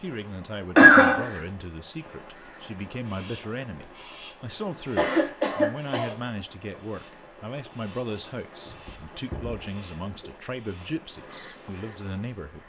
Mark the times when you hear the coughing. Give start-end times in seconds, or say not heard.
0.8-1.4, 5.0-6.2, 8.7-10.3.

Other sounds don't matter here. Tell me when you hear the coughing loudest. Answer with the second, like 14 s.
1 s.